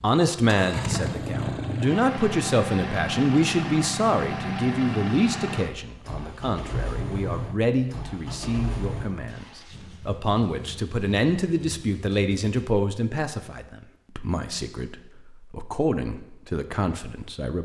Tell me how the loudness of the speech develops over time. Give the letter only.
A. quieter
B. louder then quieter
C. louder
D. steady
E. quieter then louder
A.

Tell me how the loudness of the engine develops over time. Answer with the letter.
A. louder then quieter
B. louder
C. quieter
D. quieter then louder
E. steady
C.